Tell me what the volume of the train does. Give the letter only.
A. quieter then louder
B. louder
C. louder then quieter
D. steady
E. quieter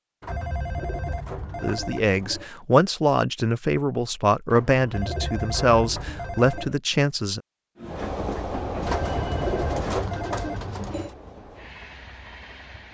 E.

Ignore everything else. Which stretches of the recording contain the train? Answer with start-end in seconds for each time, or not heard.
7.8-12.8.